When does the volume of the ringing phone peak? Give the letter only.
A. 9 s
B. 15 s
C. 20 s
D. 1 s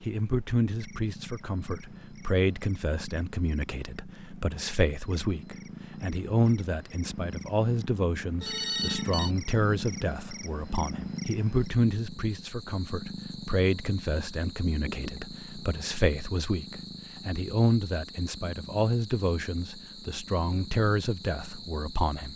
A.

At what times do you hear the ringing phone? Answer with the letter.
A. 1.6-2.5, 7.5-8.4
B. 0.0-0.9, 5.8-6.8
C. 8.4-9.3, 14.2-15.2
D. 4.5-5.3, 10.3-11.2
C.